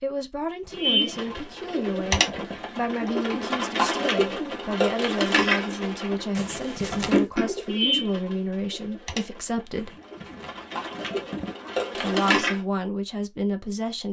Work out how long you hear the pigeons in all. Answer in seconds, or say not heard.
12 s.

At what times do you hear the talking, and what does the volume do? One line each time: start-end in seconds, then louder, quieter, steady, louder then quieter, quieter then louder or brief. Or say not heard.
0.0-9.9 steady
11.9-14.0 brief.